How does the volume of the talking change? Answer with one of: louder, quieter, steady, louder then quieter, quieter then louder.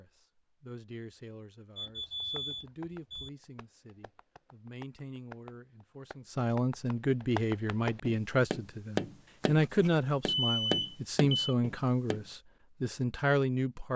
louder.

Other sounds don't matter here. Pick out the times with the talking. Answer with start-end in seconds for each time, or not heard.
0.0-13.9.